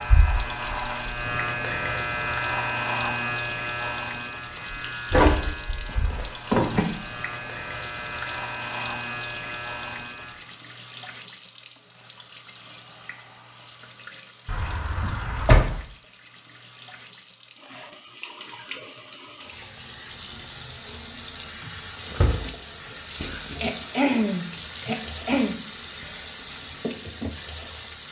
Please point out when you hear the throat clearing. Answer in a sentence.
You can hear the throat clearing from 23.6 to 26.2 s.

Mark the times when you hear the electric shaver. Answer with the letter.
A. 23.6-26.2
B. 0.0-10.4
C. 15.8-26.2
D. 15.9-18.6
B.